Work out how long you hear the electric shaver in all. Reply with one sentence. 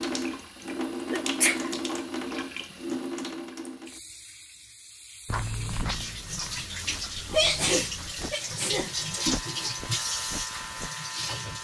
You can hear the electric shaver for 3 seconds altogether.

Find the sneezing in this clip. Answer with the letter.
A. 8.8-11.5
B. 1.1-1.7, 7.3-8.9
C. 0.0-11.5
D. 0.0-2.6
B.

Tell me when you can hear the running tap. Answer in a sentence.
The running tap can be heard from 0.0 to 11.5 s.